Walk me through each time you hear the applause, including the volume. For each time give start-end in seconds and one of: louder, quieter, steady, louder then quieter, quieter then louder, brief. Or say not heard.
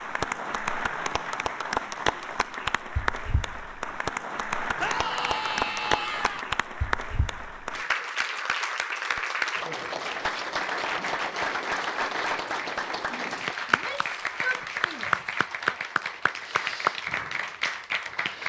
0.0-18.4 steady.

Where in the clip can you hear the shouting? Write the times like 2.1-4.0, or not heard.
4.8-6.5, 13.7-15.8.